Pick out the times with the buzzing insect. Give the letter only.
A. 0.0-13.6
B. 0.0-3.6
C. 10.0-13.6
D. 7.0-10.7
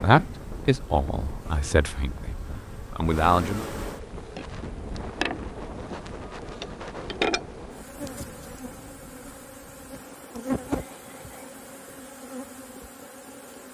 A.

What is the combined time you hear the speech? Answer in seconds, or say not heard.
4 s.